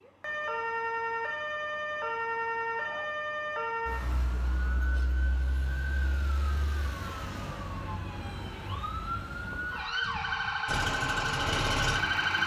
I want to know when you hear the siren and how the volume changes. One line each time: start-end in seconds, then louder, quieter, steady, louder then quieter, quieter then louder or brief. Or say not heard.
0.0-12.4 quieter then louder.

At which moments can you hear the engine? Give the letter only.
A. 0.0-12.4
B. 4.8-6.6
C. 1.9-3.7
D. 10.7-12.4
D.